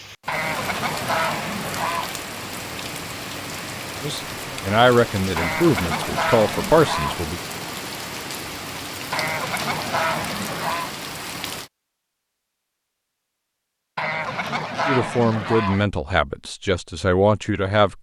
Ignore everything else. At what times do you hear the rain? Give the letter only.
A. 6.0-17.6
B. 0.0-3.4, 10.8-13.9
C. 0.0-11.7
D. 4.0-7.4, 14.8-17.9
C.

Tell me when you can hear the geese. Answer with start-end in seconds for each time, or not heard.
0.2-2.1, 5.3-7.2, 9.1-10.9, 13.9-15.8.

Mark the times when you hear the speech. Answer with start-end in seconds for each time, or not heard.
4.0-7.4, 14.8-17.9.